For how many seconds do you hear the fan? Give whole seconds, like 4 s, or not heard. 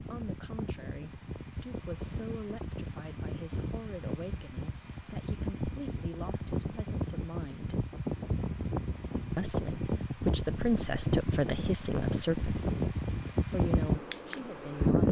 15 s.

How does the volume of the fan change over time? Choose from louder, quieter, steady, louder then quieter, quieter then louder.
louder.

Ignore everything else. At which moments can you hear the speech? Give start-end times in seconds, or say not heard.
0.0-7.8, 9.3-15.0.